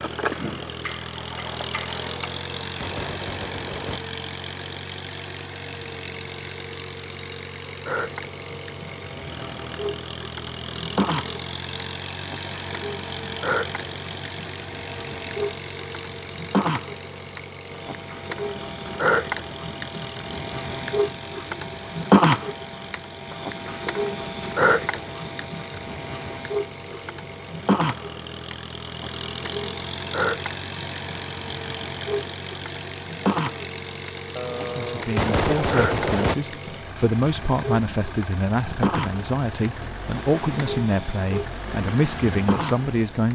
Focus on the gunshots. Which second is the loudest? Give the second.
35 s.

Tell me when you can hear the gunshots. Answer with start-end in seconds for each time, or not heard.
2.1-4.0, 34.4-36.4.